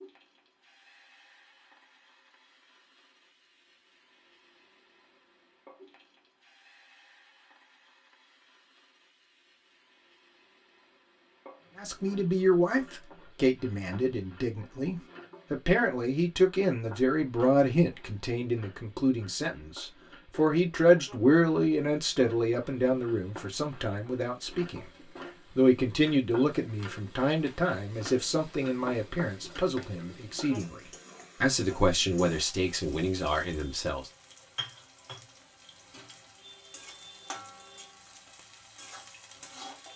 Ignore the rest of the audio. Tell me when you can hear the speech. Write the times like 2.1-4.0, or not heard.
11.8-24.9, 25.6-30.8, 31.4-34.1.